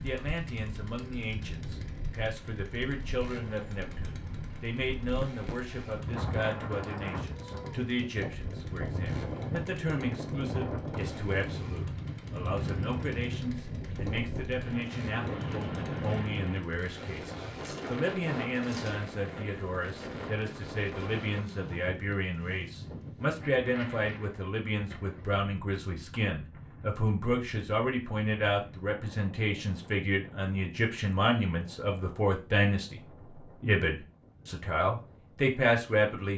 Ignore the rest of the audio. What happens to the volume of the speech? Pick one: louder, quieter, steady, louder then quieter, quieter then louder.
louder.